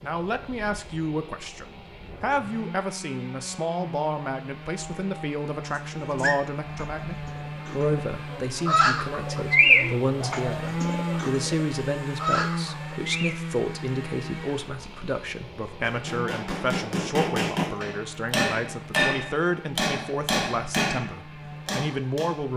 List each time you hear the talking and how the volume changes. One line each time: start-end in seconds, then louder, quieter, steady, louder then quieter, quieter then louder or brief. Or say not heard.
0.0-22.5 steady.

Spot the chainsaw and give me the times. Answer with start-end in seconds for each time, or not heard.
0.0-22.5.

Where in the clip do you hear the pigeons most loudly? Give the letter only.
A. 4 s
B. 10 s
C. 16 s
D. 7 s
B.